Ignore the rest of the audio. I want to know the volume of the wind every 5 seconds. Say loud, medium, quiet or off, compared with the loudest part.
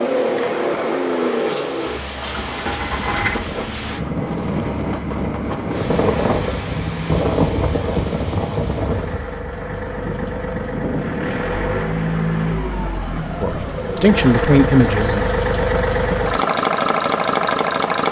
medium, loud, medium, off.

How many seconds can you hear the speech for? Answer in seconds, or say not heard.
2 s.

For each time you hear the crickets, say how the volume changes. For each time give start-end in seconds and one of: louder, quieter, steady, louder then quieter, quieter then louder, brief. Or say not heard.
not heard.